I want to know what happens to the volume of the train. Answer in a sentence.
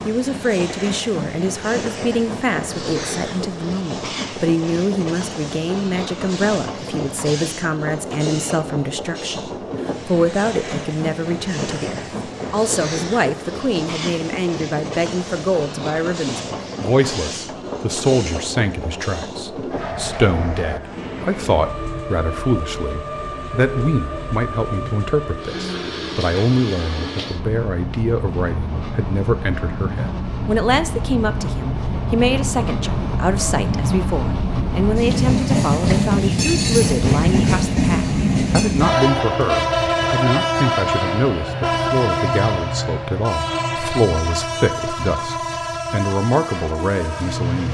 The loudness of the train goes up.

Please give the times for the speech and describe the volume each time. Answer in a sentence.
The speech can be heard from 0.1 to 47.6 s, at a steady volume.